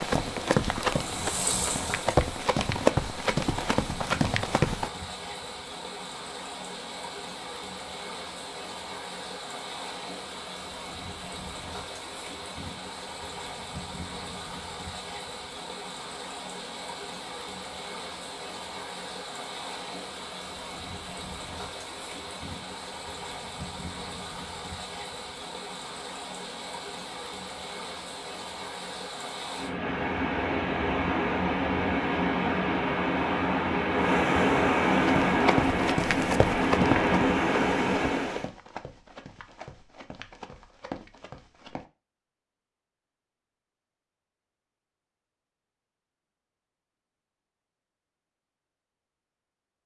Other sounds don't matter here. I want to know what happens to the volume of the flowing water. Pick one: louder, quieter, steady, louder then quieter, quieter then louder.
louder.